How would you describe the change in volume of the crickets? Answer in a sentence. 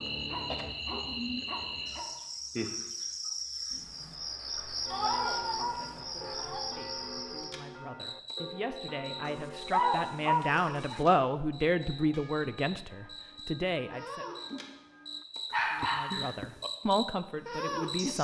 The loudness of the crickets goes down, then up.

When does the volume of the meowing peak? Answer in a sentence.
The volume of the meowing peaks at 5 seconds.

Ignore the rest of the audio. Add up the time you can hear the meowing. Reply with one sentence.
The meowing can be heard for 2 seconds in total.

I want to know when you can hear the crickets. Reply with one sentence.
The crickets can be heard from 0.0 to 18.1 s.